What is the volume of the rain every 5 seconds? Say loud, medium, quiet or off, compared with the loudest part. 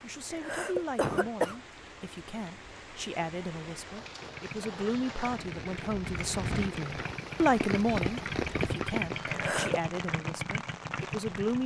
medium, loud, medium.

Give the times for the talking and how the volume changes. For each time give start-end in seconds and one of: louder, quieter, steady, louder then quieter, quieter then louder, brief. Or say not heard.
0.0-11.6 louder then quieter.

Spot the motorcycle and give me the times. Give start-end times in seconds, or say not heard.
4.0-11.6.